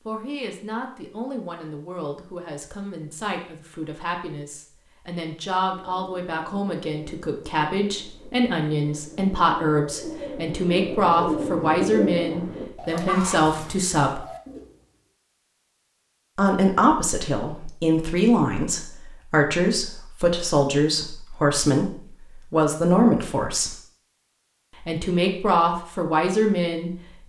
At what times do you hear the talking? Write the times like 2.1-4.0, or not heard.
0.1-14.2, 16.4-21.9, 22.5-23.8, 24.8-27.2.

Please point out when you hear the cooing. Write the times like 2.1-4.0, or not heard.
5.6-14.9.